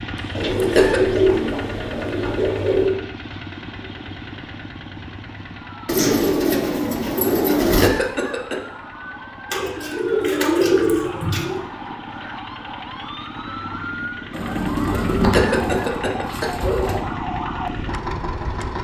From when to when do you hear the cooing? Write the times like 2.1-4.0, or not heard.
0.3-3.0, 5.8-7.9, 9.5-11.6, 14.3-17.0.